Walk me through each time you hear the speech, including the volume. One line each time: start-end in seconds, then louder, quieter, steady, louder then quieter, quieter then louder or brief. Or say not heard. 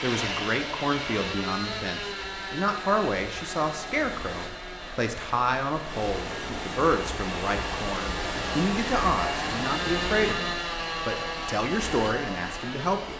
0.0-13.1 steady.